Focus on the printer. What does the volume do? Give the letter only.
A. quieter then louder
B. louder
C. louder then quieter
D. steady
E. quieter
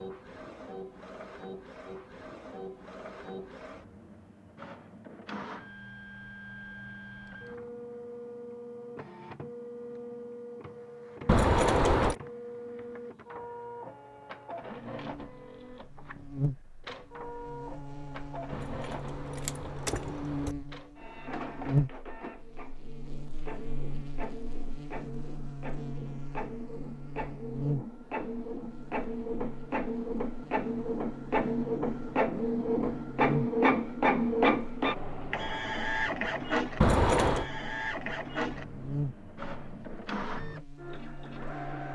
B.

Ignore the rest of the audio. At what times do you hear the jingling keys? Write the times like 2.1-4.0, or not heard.
11.2-12.2, 18.5-20.6, 36.8-37.5.